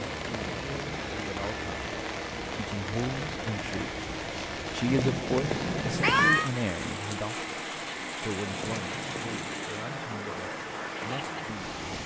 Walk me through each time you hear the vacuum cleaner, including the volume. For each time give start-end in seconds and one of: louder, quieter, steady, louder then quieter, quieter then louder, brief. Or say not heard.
0.0-12.0 steady.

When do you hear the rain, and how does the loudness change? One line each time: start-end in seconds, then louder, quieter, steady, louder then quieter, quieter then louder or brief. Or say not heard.
0.0-12.0 steady.